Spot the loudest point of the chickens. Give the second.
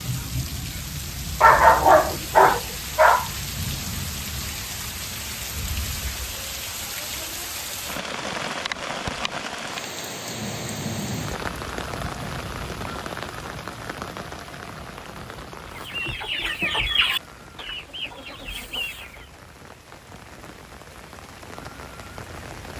17 s.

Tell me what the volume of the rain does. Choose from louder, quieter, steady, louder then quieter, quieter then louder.
quieter.